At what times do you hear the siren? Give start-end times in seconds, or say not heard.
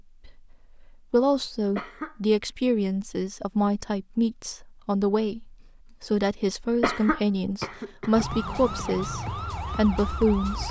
8.1-10.6.